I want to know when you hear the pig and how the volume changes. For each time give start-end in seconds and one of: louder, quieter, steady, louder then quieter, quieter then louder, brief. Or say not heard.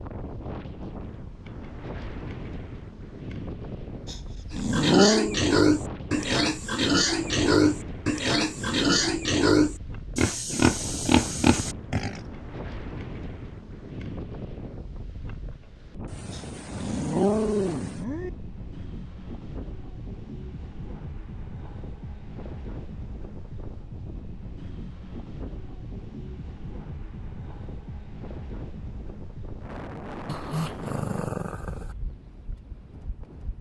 4.5-12.2 steady.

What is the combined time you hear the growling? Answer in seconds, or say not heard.
5 s.